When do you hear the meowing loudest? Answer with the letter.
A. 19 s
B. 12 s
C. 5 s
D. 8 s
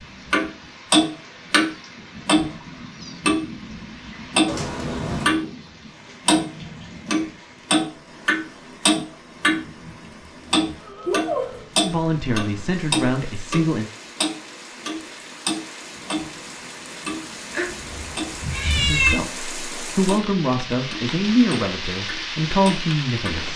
A.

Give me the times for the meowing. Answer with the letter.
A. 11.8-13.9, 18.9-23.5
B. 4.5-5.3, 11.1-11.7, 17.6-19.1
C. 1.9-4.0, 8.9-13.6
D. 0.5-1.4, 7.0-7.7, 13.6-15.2
B.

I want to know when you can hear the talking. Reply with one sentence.
The talking can be heard from 11.8 to 13.9 s and from 18.9 to 23.5 s.